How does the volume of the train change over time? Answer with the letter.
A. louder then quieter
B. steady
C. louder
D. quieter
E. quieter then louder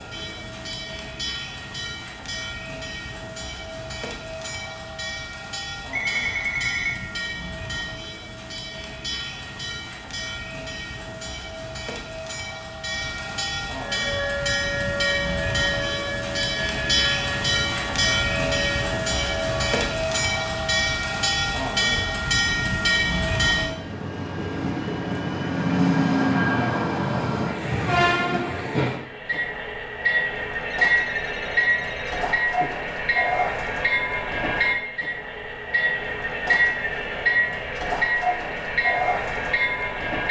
C.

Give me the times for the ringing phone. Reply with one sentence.
The ringing phone can be heard from 5.9 to 7.0 s and from 30.9 to 32.7 s.